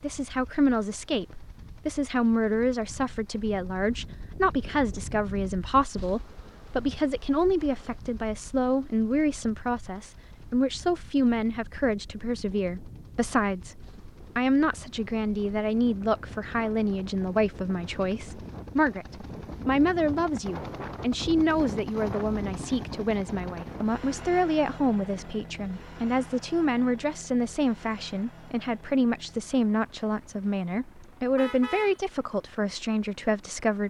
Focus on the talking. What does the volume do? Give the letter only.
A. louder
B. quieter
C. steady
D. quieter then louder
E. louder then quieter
C.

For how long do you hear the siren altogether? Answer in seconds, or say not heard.
not heard.